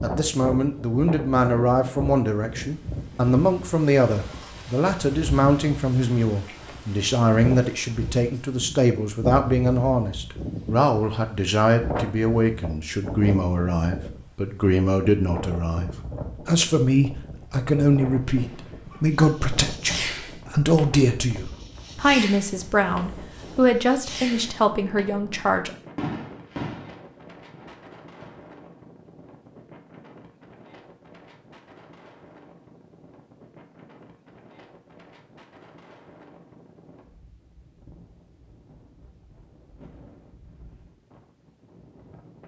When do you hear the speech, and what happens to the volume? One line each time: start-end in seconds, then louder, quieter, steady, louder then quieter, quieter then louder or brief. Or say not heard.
0.0-25.7 steady.